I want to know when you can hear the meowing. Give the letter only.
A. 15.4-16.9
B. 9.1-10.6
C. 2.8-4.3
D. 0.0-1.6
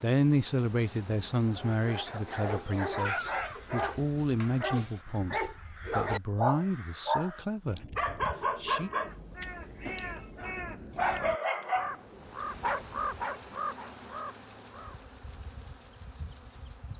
B.